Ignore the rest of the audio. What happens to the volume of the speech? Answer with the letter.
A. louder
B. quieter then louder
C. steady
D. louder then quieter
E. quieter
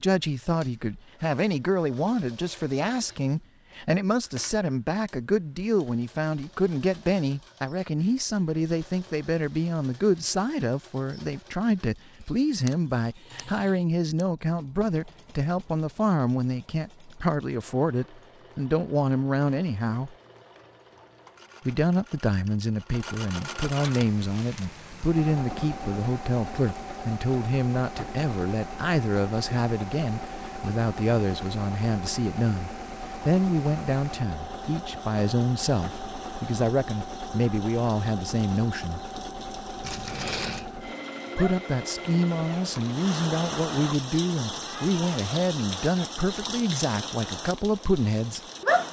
C.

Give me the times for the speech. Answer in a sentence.
The speech can be heard from 0.0 to 20.1 s, from 21.6 to 39.0 s and from 41.4 to 48.4 s.